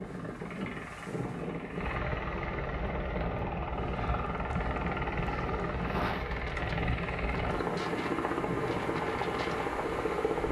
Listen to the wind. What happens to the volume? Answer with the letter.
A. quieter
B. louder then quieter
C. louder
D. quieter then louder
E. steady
E.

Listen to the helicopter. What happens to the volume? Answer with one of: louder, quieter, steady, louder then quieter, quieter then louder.
louder.